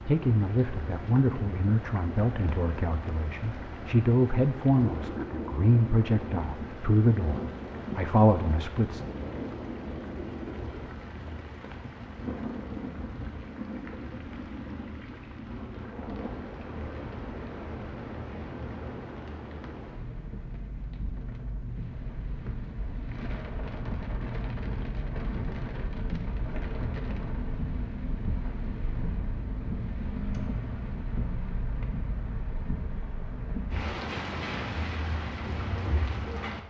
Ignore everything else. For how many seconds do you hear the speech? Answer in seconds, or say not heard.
9 s.